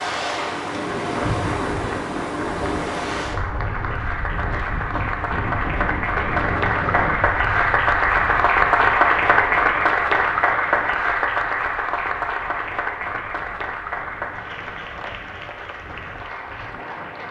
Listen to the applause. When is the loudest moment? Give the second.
9 s.